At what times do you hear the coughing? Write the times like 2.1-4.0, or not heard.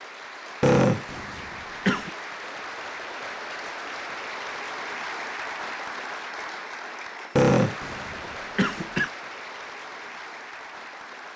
0.6-2.1, 7.3-9.1.